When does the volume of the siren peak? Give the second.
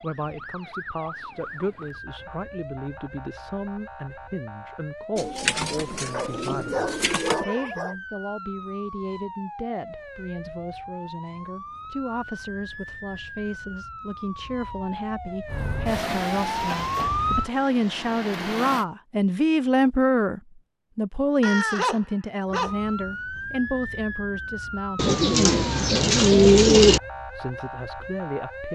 17 s.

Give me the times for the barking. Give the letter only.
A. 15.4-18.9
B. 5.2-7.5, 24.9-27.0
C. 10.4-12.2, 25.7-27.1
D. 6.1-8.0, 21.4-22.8
D.